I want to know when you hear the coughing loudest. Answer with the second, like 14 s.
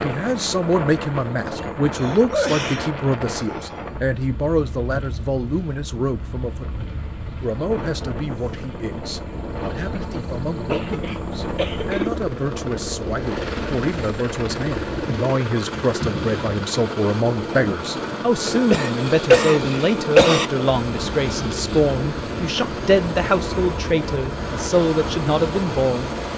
20 s.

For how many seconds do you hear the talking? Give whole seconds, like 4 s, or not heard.
26 s.